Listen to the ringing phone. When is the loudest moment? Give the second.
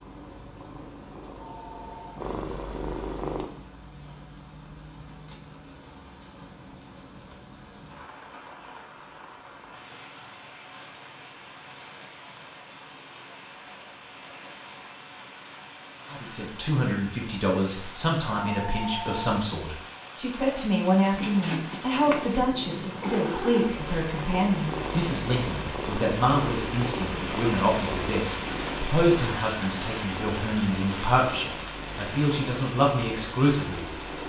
19 s.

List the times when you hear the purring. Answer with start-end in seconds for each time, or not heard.
0.0-3.5, 21.1-34.2.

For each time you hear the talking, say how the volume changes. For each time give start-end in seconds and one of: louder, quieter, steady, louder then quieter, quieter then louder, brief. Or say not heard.
16.1-33.9 steady.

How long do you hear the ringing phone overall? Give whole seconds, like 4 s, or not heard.
2 s.